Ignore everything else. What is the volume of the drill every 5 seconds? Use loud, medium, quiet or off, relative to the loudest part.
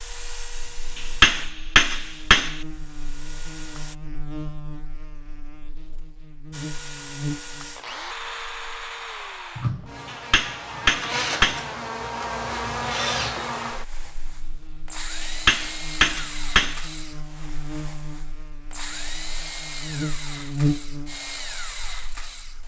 medium, loud, loud, loud, loud.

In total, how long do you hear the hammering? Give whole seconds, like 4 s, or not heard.
5 s.